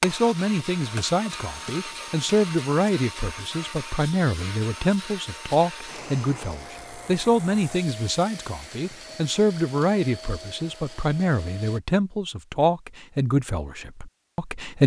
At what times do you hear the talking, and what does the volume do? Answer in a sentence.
You can hear the talking from 0.0 to 14.8 s, at a steady volume.